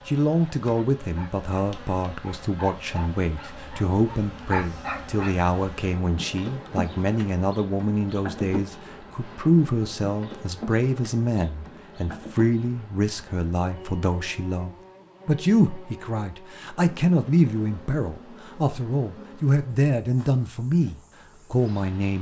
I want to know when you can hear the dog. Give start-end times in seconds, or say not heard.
0.7-5.3.